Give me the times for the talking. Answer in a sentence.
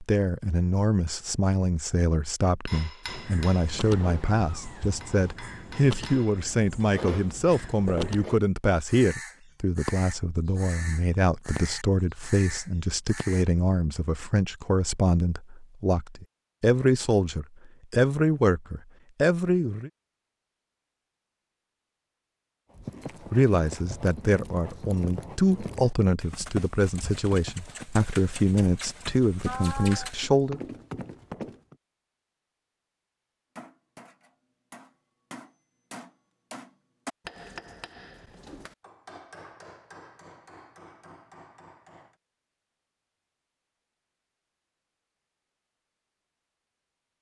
You can hear the talking from 0.0 to 19.9 s and from 23.3 to 30.6 s.